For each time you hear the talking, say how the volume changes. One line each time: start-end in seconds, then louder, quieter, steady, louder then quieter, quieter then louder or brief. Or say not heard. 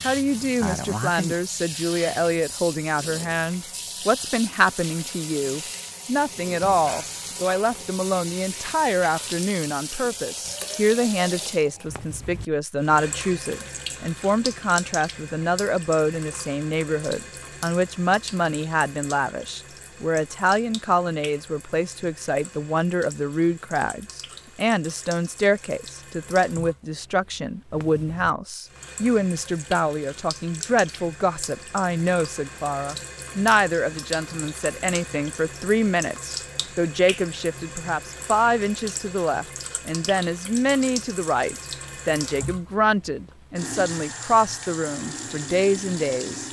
0.0-46.4 steady.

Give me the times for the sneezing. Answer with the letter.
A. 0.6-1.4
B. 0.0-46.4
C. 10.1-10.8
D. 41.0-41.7
A.